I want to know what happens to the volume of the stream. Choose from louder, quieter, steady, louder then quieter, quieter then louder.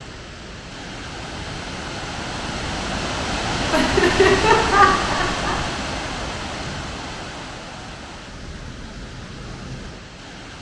louder then quieter.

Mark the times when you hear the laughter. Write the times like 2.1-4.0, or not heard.
3.7-5.6.